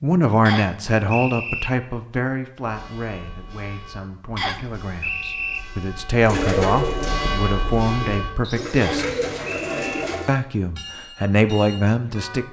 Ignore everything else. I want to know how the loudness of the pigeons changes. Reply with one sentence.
The volume of the pigeons goes down, then up.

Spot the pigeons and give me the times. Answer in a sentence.
The pigeons can be heard from 6.2 to 10.3 s.